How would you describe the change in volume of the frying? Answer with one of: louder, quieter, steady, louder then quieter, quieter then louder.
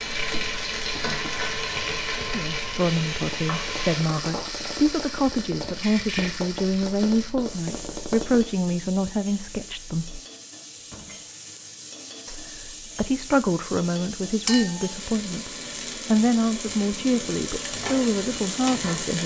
quieter then louder.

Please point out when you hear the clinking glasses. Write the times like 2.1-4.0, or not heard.
14.4-14.9.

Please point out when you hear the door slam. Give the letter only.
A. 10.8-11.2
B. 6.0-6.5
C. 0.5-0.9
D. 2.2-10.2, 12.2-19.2
A.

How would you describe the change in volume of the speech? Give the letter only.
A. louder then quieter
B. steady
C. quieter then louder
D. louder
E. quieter
B.